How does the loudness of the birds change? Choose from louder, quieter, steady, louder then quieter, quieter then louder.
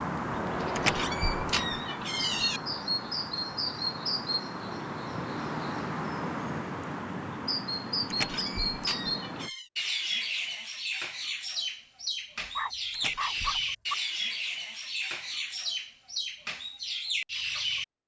steady.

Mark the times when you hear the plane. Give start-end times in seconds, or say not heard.
0.1-1.8.